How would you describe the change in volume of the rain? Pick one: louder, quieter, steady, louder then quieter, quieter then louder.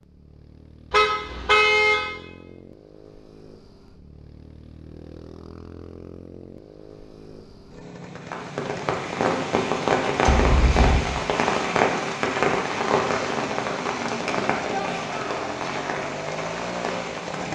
quieter.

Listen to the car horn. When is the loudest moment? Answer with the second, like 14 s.
2 s.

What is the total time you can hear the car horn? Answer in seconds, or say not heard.
2 s.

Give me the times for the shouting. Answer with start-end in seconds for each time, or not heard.
14.7-15.5.